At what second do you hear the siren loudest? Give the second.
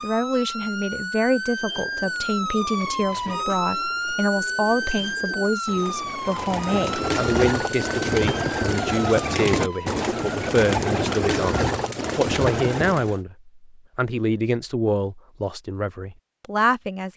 4 s.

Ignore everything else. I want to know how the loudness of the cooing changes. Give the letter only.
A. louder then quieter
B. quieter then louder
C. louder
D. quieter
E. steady
C.